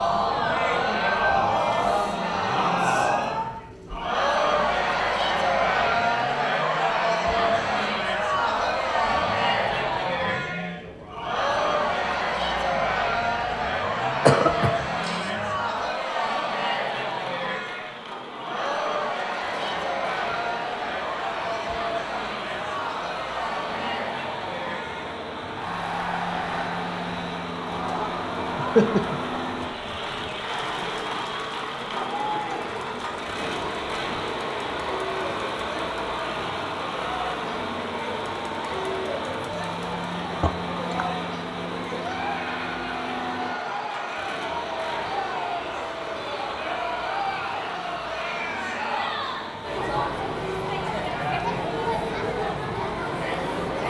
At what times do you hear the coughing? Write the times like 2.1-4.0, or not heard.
14.2-15.3, 28.4-29.4, 40.4-41.0.